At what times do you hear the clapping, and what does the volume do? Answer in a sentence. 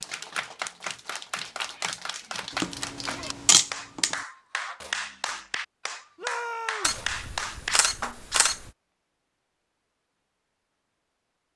The clapping can be heard from 0.0 to 8.2 s, at a steady volume.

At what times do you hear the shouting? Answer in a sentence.
You can hear the shouting from 6.2 to 7.0 s.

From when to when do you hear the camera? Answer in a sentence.
You can hear the camera from 2.5 to 4.2 s and from 6.8 to 8.7 s.